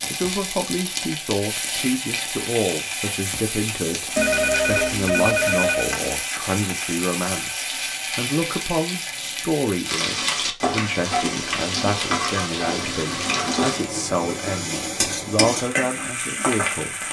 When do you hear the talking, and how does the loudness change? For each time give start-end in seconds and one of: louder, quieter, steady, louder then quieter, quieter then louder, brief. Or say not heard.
0.1-17.0 steady.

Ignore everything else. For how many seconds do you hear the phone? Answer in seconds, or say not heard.
2 s.